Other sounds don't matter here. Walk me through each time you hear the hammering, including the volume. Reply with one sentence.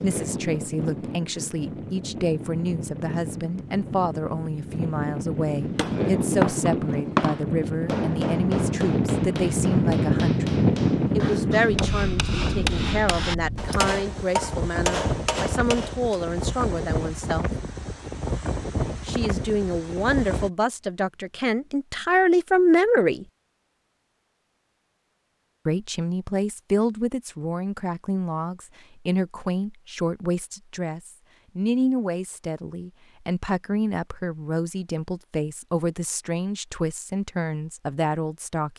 The hammering can be heard from 5.8 to 16.1 s, getting quieter then louder.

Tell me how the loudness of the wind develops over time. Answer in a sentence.
The volume of the wind goes up, then down.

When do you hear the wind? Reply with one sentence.
You can hear the wind from 0.0 to 20.5 s.